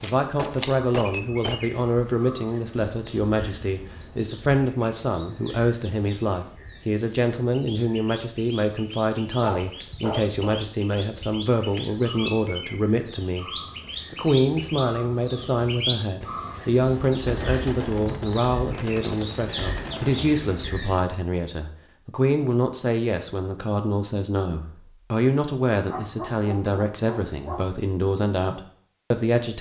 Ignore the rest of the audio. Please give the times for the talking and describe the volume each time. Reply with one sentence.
The talking can be heard from 0.0 to 29.5 s, at a steady volume.